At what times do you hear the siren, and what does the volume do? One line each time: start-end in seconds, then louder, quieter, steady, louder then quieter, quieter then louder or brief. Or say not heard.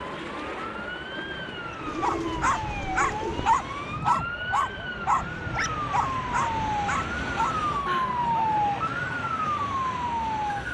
0.0-10.6 louder.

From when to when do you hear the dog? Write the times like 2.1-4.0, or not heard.
1.9-8.5.